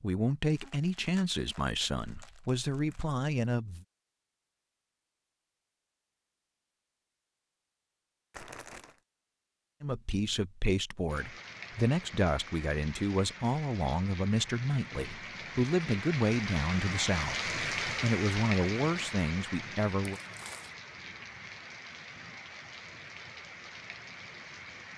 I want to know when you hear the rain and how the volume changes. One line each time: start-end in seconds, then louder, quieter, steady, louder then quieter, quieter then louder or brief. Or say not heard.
11.1-24.9 louder then quieter.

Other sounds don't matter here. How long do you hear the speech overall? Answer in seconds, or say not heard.
14 s.